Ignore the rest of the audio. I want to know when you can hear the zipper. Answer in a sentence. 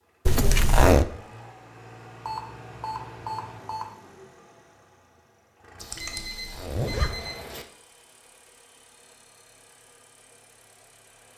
The zipper can be heard from 0.2 to 1.1 s and from 6.0 to 7.2 s.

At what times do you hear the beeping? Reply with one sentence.
You can hear the beeping from 2.2 to 3.9 s and from 5.8 to 7.7 s.